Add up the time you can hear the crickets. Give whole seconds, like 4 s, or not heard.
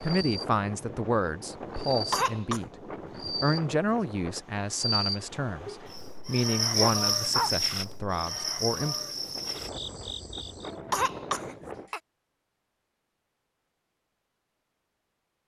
11 s.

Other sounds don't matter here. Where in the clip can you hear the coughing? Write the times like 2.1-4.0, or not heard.
1.9-2.6, 5.6-6.8, 10.7-12.0.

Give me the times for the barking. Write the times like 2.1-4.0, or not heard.
6.8-7.6.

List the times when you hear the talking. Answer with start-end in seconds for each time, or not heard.
0.0-2.7, 3.3-8.9.